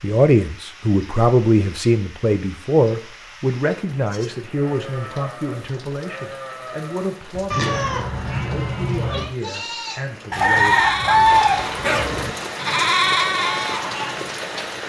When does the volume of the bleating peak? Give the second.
13 s.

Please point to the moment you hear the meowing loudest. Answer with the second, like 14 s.
8 s.